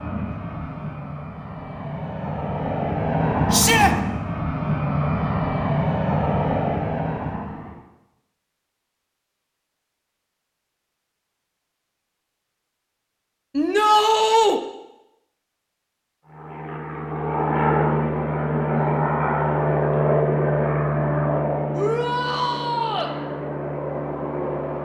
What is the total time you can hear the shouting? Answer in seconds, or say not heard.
3 s.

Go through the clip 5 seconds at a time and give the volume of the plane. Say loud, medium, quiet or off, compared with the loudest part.
loud, loud, off, loud, loud.